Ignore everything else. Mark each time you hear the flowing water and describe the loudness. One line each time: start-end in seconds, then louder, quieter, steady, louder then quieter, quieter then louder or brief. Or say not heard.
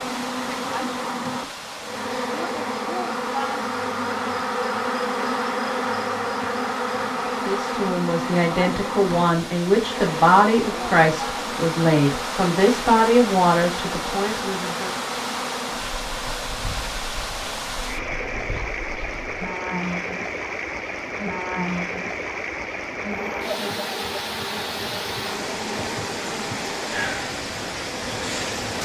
0.0-28.7 louder.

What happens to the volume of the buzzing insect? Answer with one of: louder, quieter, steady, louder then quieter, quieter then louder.
quieter.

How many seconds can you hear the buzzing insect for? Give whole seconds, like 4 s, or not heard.
29 s.